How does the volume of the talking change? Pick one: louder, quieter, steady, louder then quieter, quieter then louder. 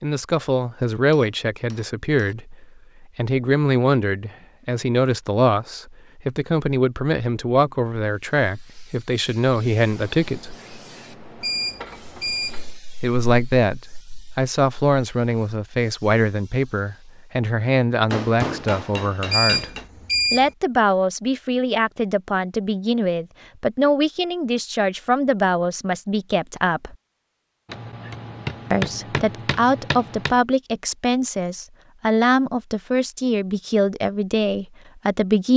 steady.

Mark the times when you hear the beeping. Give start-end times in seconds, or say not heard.
11.4-12.7, 19.3-20.5.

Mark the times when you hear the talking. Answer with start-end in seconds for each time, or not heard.
0.0-10.6, 13.0-19.7, 20.3-26.9, 28.7-35.5.